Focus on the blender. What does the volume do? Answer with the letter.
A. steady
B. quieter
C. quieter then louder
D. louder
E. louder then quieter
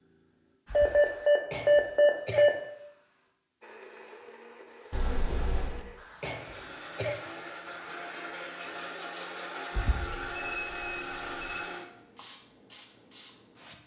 D.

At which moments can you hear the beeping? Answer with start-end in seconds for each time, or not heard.
0.7-2.5, 4.9-5.8, 10.3-11.6.